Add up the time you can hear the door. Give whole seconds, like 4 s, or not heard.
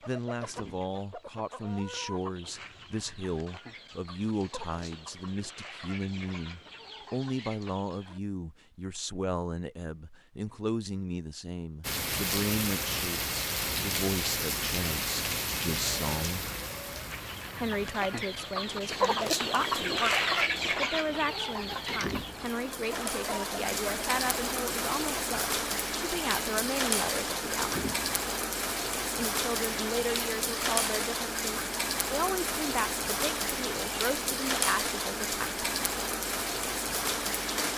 2 s.